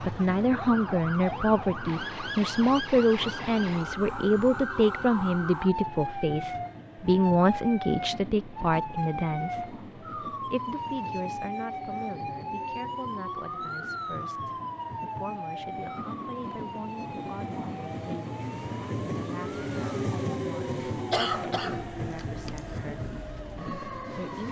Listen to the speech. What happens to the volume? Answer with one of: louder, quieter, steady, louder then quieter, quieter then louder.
quieter.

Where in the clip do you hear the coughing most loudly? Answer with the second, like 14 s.
21 s.